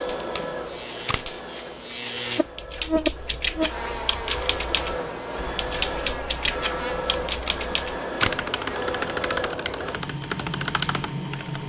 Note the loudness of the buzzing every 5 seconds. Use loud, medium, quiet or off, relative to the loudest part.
loud, medium, off.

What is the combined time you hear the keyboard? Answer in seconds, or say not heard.
9 s.